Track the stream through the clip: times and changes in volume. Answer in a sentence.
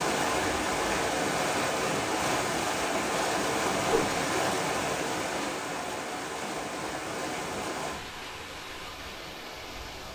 The stream can be heard from 0.0 to 10.0 s, getting quieter.